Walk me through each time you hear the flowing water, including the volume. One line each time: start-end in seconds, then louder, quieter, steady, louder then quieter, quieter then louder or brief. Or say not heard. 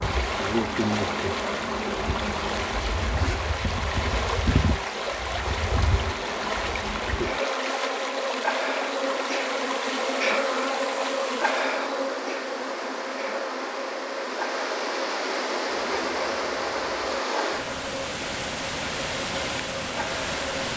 0.0-20.7 steady.